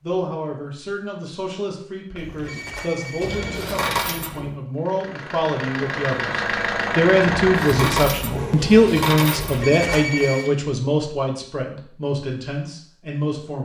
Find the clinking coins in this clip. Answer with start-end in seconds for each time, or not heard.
3.2-4.5, 7.3-9.7.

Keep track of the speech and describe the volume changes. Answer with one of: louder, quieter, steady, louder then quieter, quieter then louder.
louder then quieter.